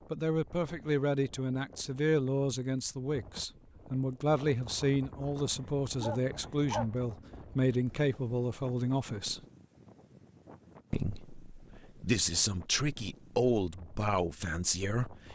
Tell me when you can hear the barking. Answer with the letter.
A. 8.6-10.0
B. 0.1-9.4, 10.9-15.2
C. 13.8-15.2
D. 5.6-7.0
D.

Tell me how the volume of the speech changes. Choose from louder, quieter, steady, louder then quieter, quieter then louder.
steady.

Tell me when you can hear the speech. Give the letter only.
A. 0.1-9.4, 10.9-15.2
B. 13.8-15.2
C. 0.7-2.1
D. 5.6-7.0
A.